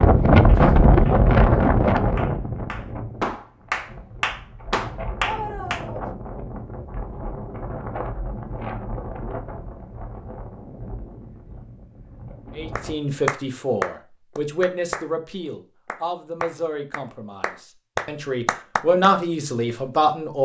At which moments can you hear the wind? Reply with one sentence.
The wind can be heard from 0.0 to 12.9 s.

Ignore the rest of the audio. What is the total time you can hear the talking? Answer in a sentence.
The talking can be heard for 8 seconds in total.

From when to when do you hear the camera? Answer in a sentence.
The camera can't be heard in this clip.